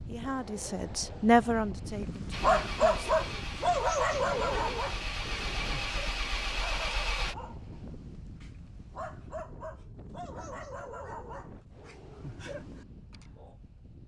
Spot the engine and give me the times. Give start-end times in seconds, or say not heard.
2.3-7.3.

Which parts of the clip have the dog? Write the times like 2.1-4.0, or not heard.
1.9-13.6.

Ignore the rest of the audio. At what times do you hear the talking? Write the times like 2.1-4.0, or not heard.
0.1-3.1.